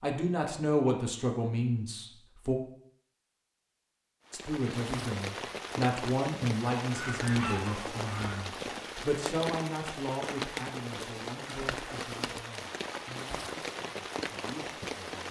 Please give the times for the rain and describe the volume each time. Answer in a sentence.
The rain can be heard from 4.2 to 15.2 s, at a steady volume.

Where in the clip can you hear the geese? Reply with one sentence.
You can hear the geese from 7.0 to 8.4 s.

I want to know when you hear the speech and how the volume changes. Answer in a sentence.
The speech can be heard briefly from 0.0 to 2.5 s; and from 4.3 to 15.2 s, getting quieter.